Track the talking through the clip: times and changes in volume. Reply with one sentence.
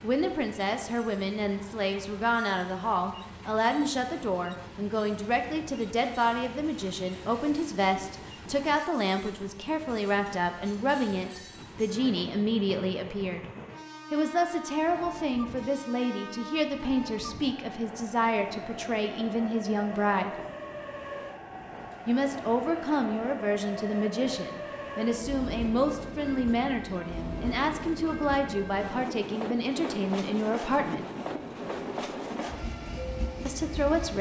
The talking can be heard from 0.0 to 13.4 s, at a steady volume; from 14.1 to 20.3 s, at a steady volume; from 22.1 to 31.1 s, at a steady volume; and briefly from 33.5 to 34.1 s.